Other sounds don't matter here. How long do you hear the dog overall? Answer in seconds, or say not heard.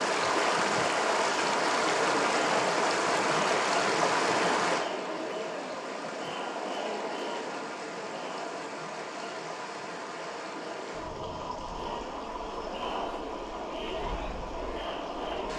not heard.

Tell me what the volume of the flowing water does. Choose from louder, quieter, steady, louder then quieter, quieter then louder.
quieter.